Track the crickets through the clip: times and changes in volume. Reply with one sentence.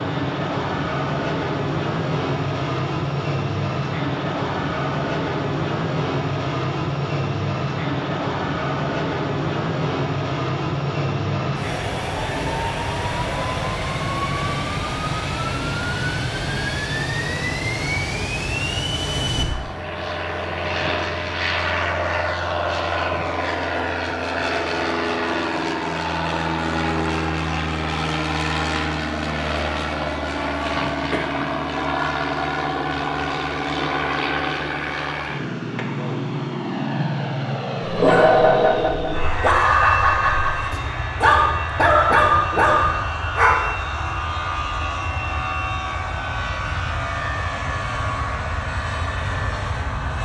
The crickets can't be heard in this clip.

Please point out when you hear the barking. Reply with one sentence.
The barking can be heard from 37.8 to 43.7 s.